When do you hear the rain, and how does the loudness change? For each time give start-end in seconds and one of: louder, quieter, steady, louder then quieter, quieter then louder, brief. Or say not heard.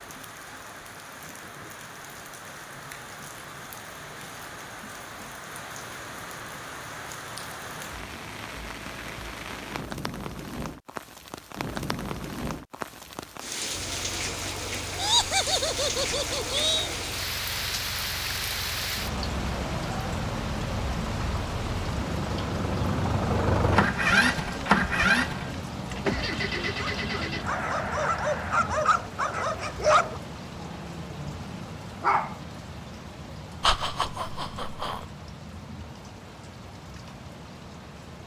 0.0-38.2 louder then quieter.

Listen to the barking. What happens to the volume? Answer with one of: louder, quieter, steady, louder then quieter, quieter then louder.
louder then quieter.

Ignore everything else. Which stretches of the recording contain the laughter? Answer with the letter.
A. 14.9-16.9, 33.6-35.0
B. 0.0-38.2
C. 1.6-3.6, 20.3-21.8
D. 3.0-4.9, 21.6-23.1
A.